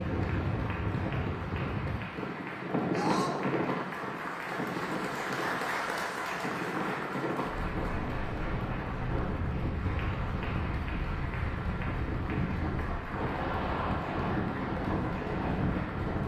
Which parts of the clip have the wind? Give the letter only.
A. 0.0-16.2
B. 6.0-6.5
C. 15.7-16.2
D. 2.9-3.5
A.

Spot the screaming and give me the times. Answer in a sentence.
The screaming can be heard from 2.9 to 3.5 s.